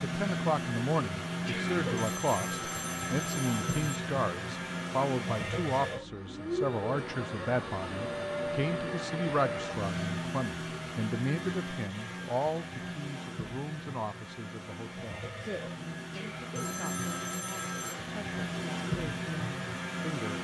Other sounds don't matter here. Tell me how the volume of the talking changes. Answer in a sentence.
The volume of the talking goes down.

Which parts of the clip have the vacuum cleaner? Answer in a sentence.
You can hear the vacuum cleaner from 0.0 to 20.4 s.